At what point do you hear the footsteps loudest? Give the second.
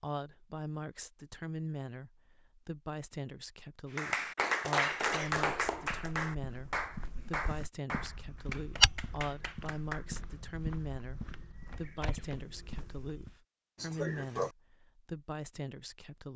9 s.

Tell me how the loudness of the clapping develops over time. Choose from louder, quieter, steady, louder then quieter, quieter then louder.
quieter.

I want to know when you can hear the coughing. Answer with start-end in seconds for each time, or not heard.
4.8-5.3, 13.8-14.6.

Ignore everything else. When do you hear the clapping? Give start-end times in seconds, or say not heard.
4.0-10.2.